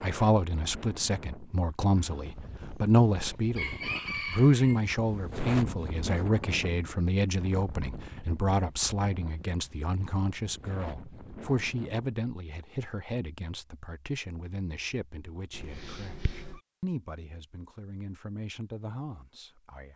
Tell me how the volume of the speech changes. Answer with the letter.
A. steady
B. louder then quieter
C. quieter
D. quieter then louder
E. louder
C.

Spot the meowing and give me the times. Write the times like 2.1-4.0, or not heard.
15.5-16.6.